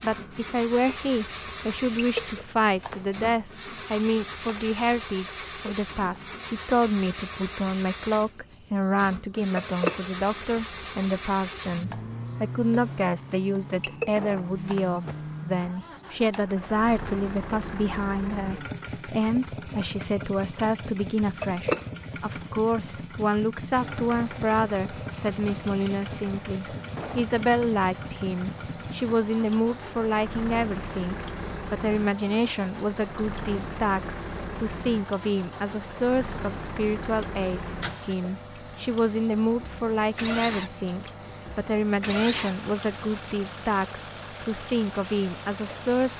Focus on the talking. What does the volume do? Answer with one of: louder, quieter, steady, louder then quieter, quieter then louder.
steady.